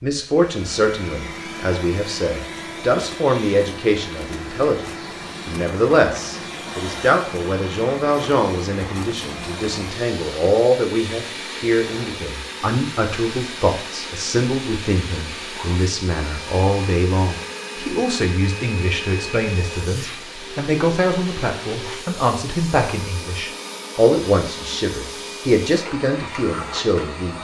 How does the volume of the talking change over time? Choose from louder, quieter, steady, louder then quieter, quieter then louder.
steady.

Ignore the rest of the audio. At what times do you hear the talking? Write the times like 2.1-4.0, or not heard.
0.0-27.3.